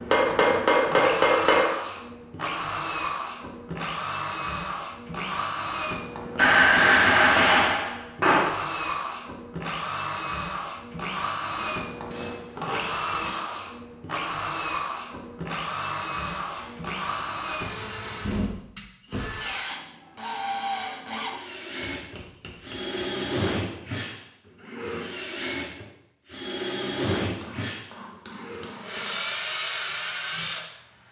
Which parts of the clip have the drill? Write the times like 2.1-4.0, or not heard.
0.0-31.0.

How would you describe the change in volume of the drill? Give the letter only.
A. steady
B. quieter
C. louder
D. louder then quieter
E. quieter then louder
A.